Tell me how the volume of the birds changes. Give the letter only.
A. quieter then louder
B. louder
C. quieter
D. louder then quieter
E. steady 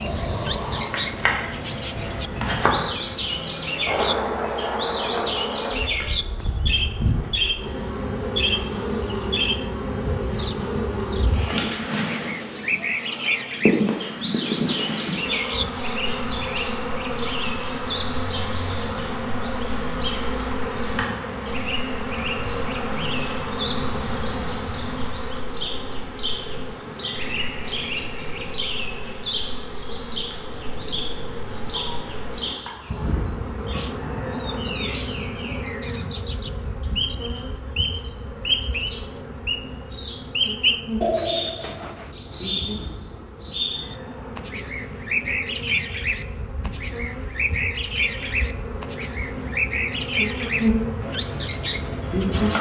A.